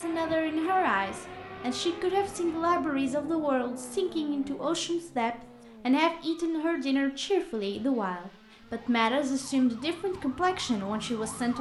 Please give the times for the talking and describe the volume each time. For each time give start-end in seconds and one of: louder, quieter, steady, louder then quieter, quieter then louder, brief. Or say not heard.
0.0-11.5 steady.